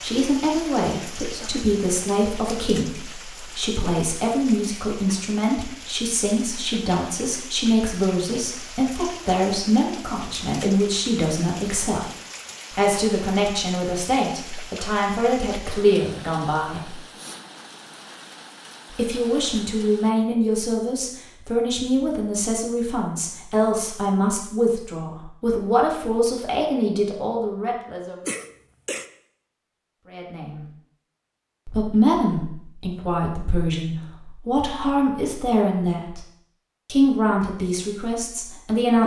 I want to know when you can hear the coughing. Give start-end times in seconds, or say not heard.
28.2-29.1.